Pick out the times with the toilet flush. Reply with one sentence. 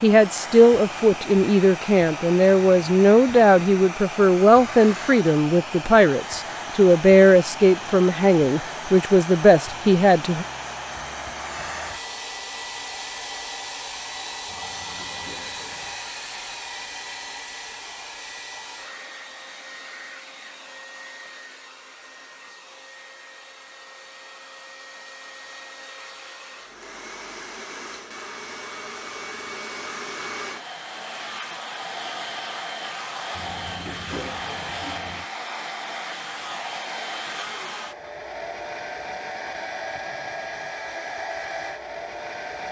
The toilet flush can be heard from 14.4 to 16.0 s and from 33.4 to 35.3 s.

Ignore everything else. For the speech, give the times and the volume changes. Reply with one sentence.
The speech can be heard from 0.0 to 10.4 s, at a steady volume.